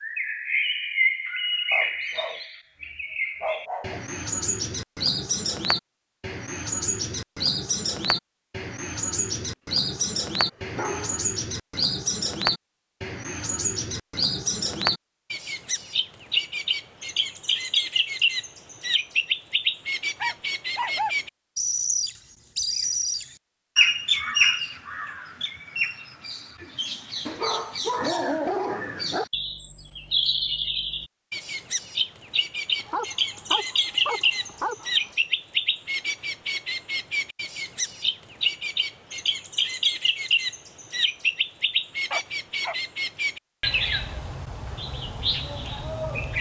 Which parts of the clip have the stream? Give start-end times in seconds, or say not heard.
not heard.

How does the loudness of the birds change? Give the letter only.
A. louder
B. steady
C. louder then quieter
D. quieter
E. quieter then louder
B.